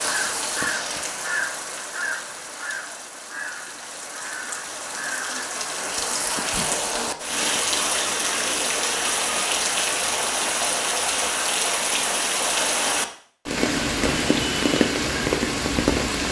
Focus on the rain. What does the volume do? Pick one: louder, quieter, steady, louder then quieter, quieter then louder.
louder.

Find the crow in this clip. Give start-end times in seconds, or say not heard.
0.0-5.5.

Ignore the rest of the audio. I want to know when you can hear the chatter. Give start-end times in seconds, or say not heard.
not heard.